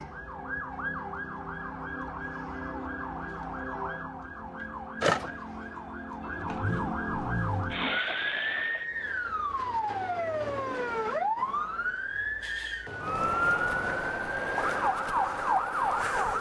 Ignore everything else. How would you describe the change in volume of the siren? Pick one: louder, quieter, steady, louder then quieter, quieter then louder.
louder.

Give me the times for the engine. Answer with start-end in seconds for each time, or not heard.
6.3-8.8.